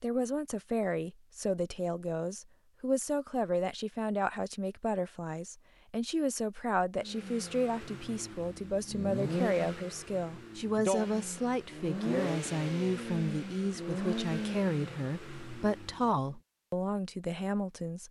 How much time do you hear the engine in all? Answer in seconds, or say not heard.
9 s.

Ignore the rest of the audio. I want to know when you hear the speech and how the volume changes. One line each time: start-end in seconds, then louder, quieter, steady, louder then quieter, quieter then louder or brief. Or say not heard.
0.0-18.0 steady.